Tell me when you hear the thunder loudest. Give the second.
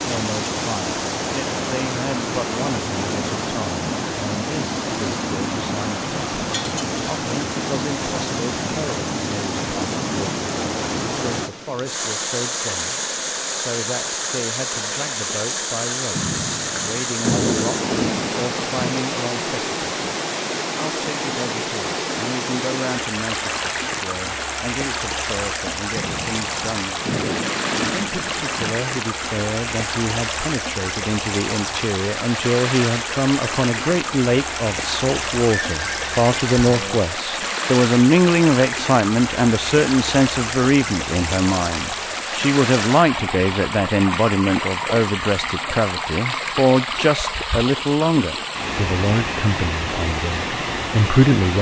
17 s.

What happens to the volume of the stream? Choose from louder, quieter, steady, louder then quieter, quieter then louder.
steady.